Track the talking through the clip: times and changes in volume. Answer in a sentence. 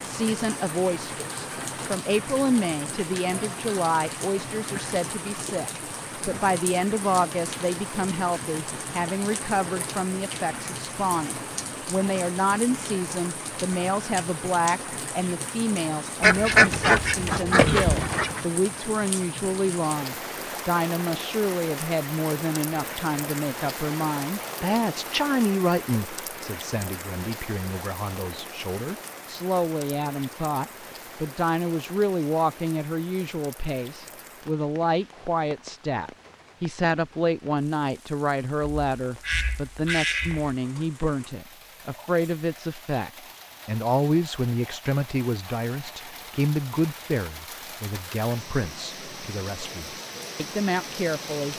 The talking can be heard from 0.0 to 51.5 s, at a steady volume.